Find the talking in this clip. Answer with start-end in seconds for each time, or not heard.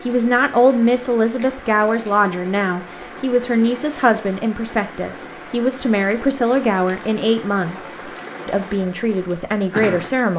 0.0-10.3.